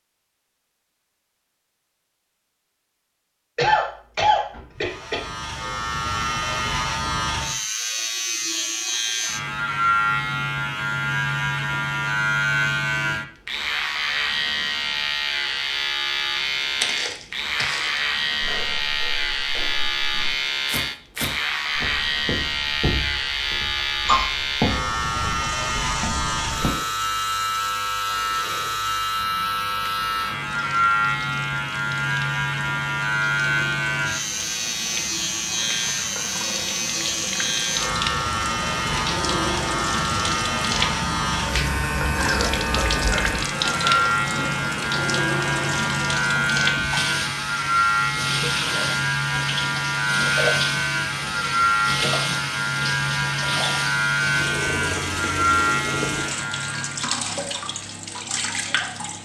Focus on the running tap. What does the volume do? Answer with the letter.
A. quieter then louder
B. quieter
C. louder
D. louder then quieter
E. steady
C.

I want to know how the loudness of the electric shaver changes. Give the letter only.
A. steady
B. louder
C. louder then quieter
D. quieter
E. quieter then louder
A.